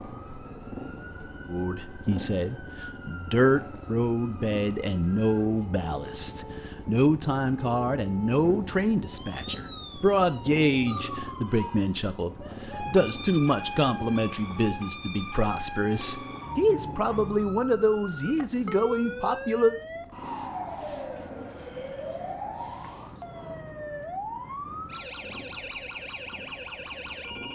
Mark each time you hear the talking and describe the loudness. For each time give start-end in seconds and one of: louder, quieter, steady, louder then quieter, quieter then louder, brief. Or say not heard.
1.4-19.8 steady.